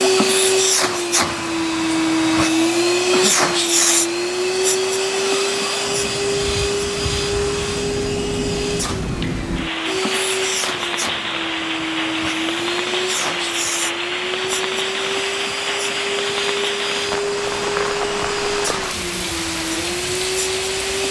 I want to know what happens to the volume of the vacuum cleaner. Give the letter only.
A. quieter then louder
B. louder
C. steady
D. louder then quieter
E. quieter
E.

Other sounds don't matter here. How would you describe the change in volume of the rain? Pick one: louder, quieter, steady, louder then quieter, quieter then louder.
louder.